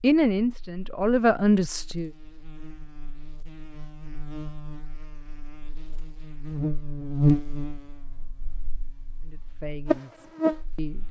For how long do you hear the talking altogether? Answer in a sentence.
The talking can be heard for 4 seconds in total.